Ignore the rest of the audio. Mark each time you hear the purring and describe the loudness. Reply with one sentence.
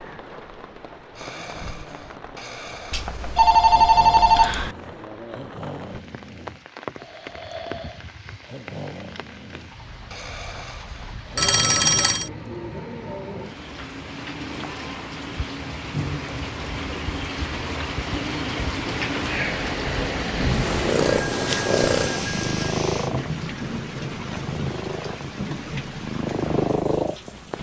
You can hear the purring from 20.4 to 27.5 s, getting quieter then louder.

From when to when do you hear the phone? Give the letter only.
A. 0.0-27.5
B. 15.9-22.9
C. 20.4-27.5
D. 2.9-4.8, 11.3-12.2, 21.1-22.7
D.